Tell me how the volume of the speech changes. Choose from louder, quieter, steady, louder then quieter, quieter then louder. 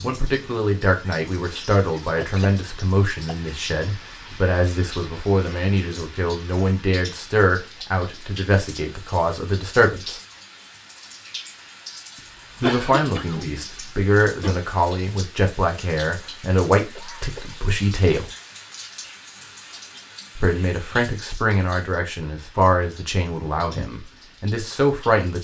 steady.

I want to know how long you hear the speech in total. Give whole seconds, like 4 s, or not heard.
21 s.